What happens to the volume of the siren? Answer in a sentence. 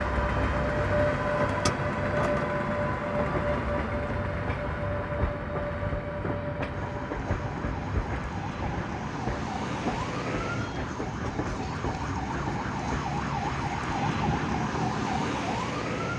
The volume of the siren goes up.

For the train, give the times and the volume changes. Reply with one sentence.
The train can be heard from 0.0 to 16.1 s, getting quieter.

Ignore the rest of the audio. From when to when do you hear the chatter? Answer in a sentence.
You can't hear the chatter here.